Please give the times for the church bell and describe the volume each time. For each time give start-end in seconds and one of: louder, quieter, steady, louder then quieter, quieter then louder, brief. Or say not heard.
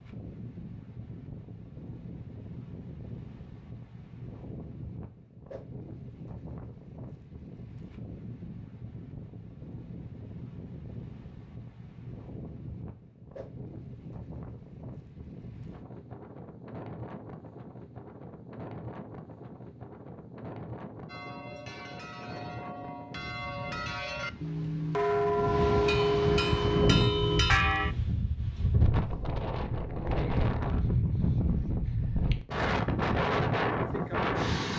21.1-27.9 louder.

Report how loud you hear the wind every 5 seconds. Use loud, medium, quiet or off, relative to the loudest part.
quiet, quiet, quiet, quiet, quiet, loud, loud.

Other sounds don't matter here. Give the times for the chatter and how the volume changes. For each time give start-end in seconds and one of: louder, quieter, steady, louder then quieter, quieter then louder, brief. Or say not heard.
not heard.